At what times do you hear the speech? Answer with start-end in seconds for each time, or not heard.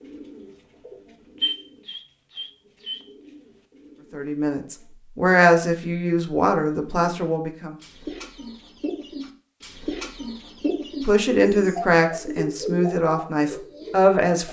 4.1-7.8, 11.1-14.4.